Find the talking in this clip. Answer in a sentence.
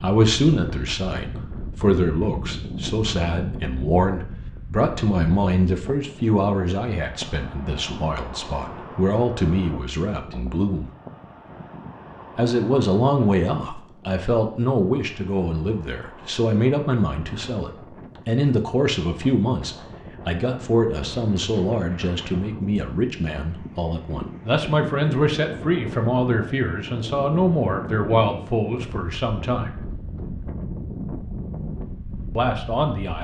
You can hear the talking from 0.0 to 10.9 s, from 12.3 to 29.8 s and from 32.4 to 33.1 s.